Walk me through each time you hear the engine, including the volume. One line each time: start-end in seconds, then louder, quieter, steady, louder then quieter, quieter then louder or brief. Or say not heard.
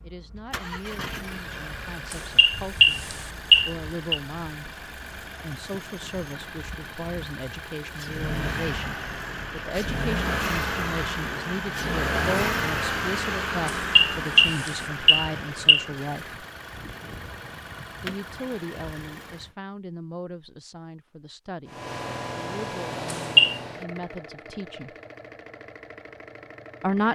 0.0-19.5 louder then quieter
21.6-27.1 quieter.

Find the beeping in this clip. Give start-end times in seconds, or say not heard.
2.1-4.2, 13.7-15.8, 23.1-23.6.